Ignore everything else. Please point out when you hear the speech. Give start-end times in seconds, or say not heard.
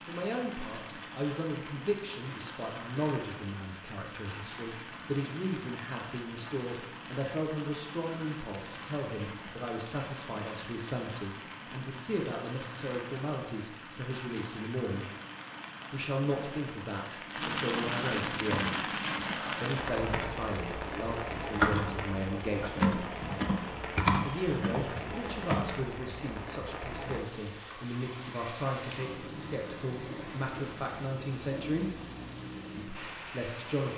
0.1-15.1, 15.9-18.8, 19.6-23.1, 24.2-31.9, 32.8-33.9.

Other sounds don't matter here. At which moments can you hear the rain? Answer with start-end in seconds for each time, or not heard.
0.0-33.9.